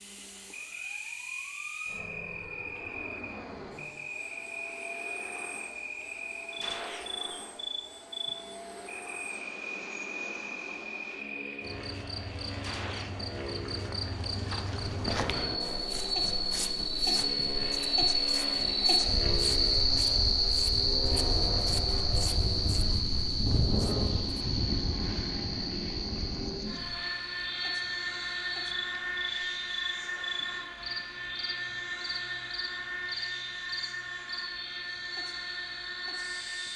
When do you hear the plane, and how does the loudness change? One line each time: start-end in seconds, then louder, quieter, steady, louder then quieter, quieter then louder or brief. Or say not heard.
0.0-36.7 louder.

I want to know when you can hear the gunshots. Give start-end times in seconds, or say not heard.
6.6-7.1, 12.6-13.2, 29.9-30.4.